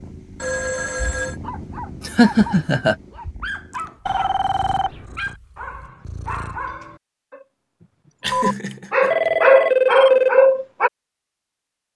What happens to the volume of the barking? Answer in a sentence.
The loudness of the barking goes up.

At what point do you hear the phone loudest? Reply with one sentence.
The volume of the phone peaks at 10 seconds.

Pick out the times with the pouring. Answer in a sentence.
The pouring can't be heard in this clip.